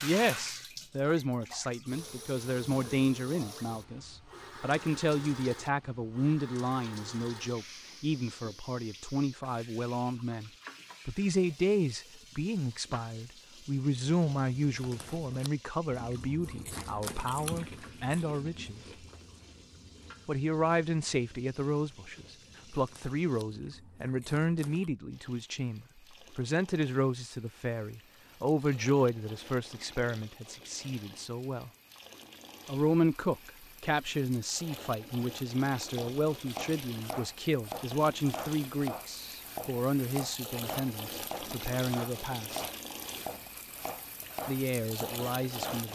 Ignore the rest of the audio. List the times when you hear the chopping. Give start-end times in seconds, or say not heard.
35.9-45.9.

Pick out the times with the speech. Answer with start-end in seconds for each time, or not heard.
0.0-18.8, 20.2-31.7, 32.6-42.6, 44.5-45.9.